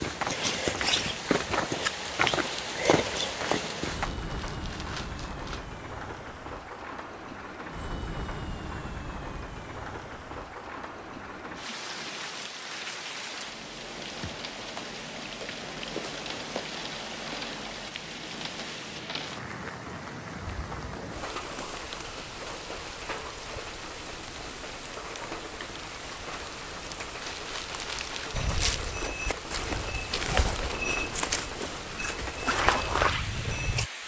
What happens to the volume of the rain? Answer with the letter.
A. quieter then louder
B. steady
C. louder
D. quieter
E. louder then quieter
B.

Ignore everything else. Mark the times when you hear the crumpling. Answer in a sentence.
You can hear the crumpling from 3.9 to 5.7 s and from 27.2 to 28.4 s.